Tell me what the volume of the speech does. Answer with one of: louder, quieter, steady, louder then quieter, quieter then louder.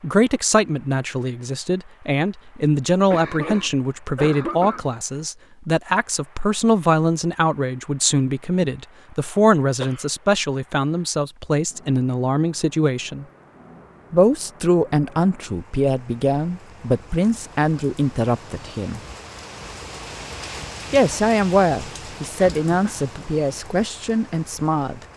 steady.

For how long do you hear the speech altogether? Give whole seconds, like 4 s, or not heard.
22 s.